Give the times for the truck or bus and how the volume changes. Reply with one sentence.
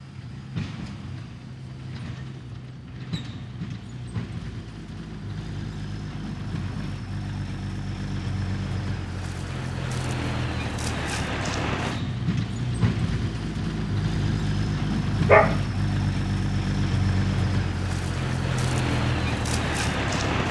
You can hear the truck or bus from 0.0 to 20.4 s, getting louder.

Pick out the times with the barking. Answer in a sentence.
The barking can be heard from 15.2 to 16.1 s.